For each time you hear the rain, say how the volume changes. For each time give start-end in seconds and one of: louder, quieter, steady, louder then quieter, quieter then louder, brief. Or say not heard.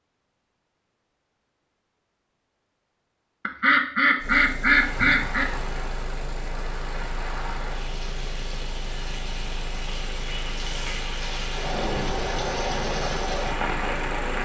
4.7-14.4 louder.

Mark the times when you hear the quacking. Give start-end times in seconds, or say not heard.
3.5-5.5.